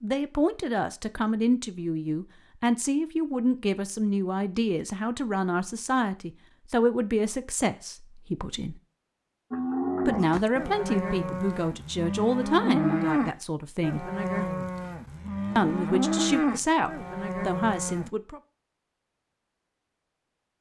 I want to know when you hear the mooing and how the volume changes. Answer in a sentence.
The mooing can be heard from 9.5 to 18.1 s, at a steady volume.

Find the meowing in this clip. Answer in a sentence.
You can't hear the meowing here.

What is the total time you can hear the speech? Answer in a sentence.
You can hear the speech for 16 seconds altogether.